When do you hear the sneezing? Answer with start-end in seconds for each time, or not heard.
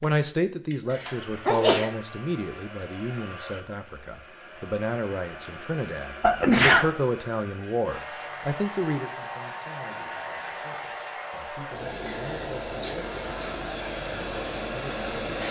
0.9-1.9, 6.2-6.9, 12.1-13.6.